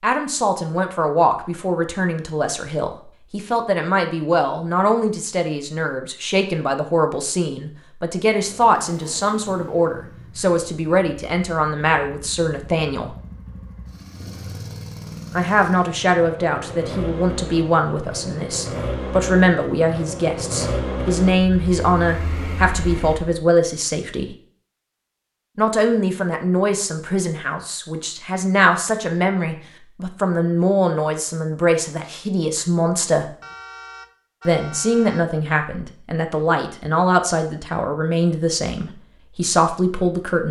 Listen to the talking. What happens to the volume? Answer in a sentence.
The volume of the talking stays about the same.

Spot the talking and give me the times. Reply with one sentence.
You can hear the talking from 0.0 to 13.2 s, from 15.3 to 24.4 s, from 25.6 to 33.2 s and from 34.5 to 40.4 s.